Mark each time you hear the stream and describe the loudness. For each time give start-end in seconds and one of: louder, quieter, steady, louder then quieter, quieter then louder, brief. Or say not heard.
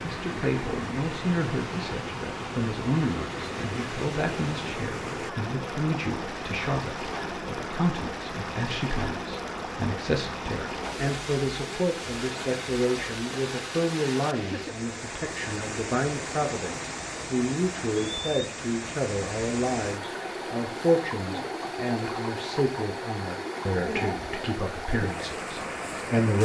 0.0-26.3 steady.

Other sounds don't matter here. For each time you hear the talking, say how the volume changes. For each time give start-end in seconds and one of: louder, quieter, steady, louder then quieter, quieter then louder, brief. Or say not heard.
0.0-26.3 steady.